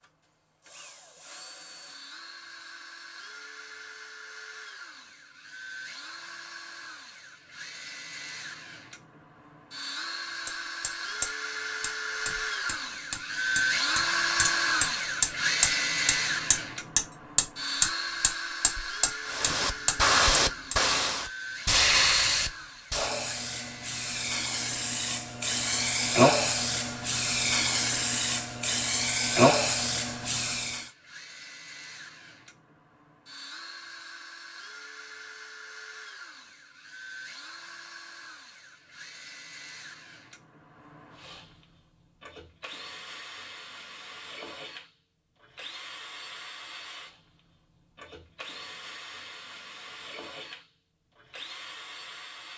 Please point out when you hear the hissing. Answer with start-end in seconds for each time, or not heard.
19.2-30.9.